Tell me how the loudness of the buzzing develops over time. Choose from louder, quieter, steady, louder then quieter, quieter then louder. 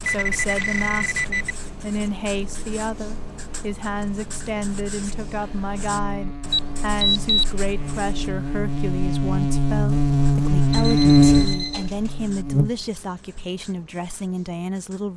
louder.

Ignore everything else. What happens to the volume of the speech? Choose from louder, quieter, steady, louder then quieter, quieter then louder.
steady.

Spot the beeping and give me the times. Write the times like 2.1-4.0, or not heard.
0.0-1.6, 6.5-7.5, 10.7-12.1.